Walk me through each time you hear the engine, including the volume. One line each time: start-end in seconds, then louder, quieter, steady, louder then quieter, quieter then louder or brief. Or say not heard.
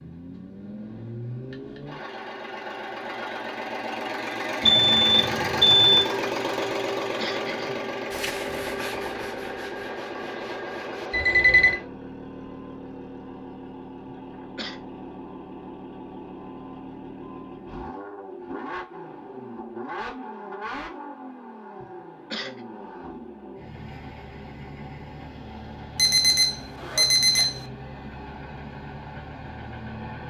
0.0-30.2 quieter.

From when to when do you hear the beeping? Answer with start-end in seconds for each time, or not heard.
4.6-6.0, 11.1-11.8, 25.9-27.6.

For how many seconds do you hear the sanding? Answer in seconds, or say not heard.
3 s.